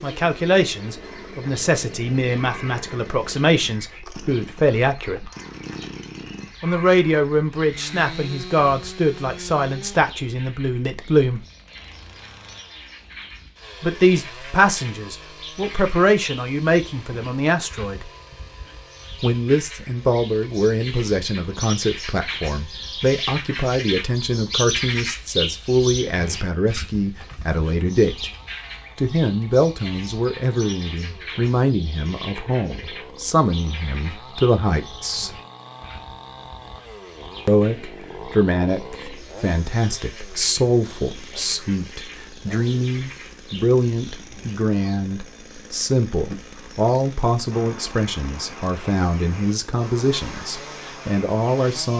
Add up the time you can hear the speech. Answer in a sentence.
The speech can be heard for 44 seconds in total.